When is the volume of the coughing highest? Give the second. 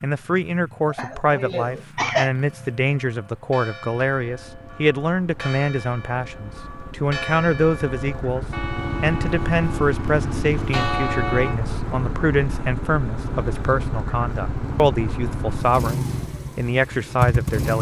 2 s.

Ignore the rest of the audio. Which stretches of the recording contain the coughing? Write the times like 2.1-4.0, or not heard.
0.8-2.3.